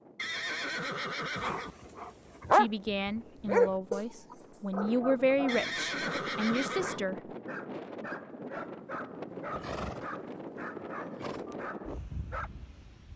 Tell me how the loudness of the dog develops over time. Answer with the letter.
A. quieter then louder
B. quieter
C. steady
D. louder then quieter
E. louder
B.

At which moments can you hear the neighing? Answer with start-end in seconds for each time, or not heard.
0.1-1.8, 5.5-7.0, 9.6-10.1, 10.9-11.6.